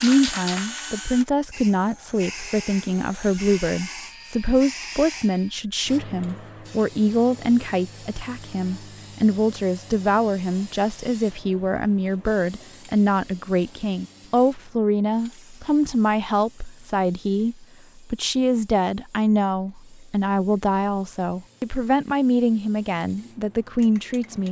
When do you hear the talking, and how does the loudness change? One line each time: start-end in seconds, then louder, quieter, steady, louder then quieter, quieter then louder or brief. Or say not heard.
0.0-24.4 steady.